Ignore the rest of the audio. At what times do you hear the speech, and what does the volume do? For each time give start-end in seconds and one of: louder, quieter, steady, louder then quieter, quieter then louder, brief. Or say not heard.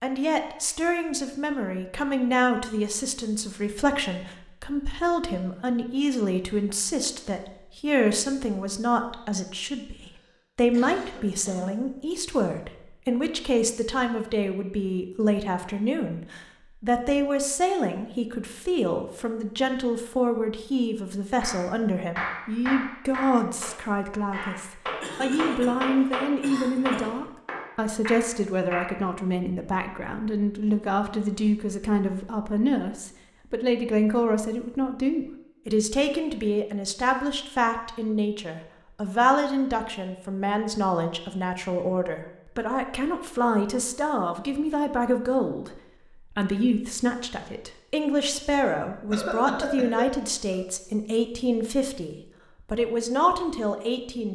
0.0-54.3 steady.